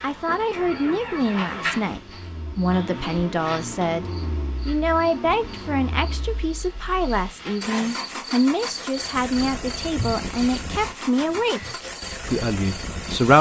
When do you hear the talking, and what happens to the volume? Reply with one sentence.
You can hear the talking from 0.0 to 13.3 s, at a steady volume.